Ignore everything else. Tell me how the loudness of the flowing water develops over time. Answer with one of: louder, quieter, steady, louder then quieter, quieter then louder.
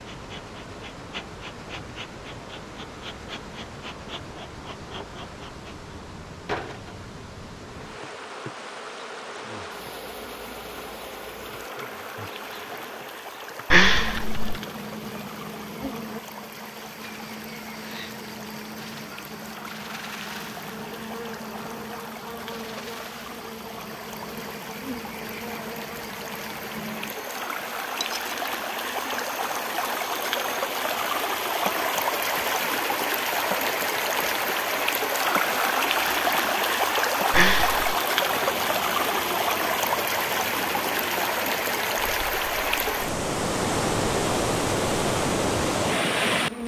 louder.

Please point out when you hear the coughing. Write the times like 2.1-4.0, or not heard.
13.7-14.6, 37.3-38.0.